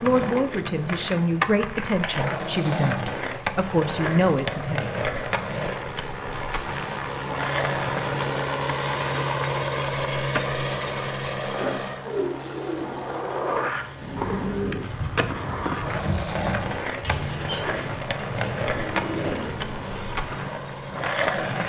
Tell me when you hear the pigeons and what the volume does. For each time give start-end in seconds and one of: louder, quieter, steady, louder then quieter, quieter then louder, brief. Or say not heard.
12.1-20.4 steady.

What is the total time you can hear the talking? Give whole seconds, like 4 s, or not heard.
5 s.